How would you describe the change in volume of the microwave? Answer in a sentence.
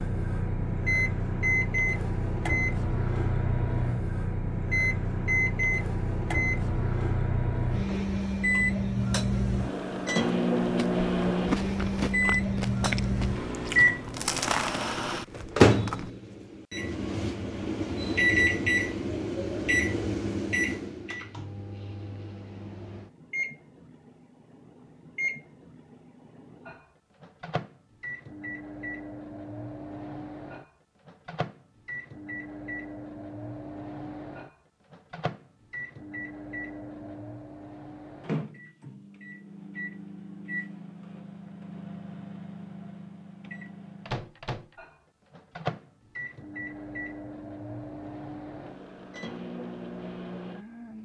The volume of the microwave goes down.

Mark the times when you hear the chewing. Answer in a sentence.
The chewing can be heard from 10.6 to 16.1 s.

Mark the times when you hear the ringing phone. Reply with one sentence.
The ringing phone can't be heard in this clip.